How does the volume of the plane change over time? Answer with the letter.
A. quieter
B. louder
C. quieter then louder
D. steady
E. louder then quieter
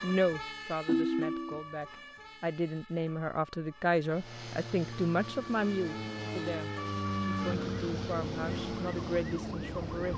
E.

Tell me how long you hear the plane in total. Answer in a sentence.
You can hear the plane for 6 seconds altogether.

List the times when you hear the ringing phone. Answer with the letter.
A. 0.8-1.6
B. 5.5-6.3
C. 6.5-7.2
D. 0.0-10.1
A.